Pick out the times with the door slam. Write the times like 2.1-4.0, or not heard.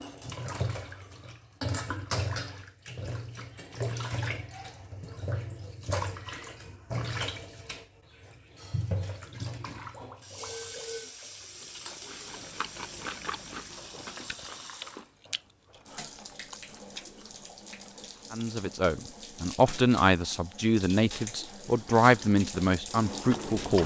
not heard.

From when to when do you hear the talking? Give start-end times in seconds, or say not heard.
18.3-23.8.